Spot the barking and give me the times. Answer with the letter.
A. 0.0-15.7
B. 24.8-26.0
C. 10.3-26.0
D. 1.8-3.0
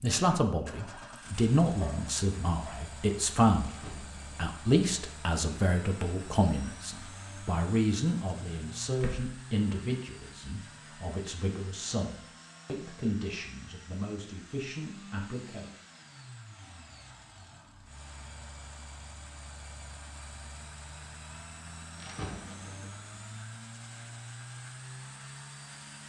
D.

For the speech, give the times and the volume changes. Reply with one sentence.
The speech can be heard from 0.0 to 15.7 s, getting quieter.